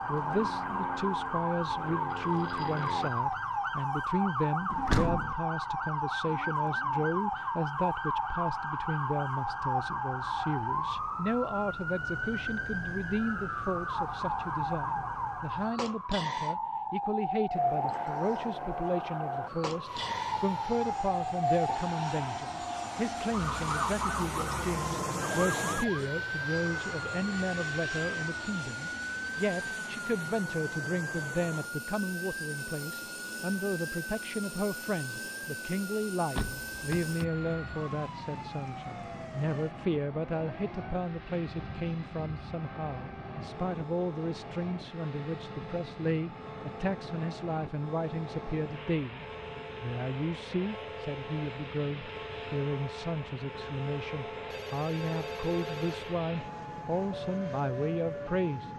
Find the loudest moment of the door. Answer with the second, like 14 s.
5 s.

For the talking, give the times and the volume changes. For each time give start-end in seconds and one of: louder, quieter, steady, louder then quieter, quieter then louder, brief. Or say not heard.
0.1-58.7 steady.